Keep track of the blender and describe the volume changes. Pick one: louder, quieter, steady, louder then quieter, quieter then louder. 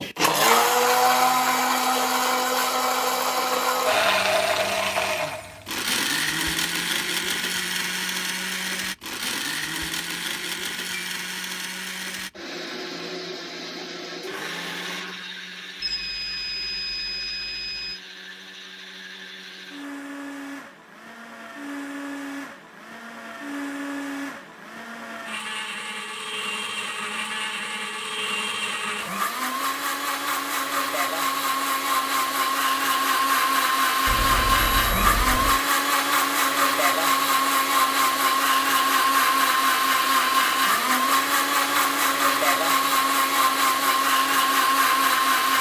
quieter then louder.